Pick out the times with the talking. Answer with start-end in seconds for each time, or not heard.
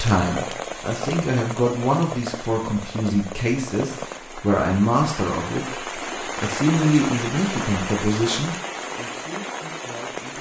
0.0-10.3.